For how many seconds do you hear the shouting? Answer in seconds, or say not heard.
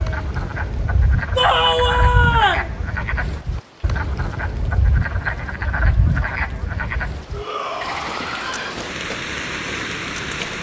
3 s.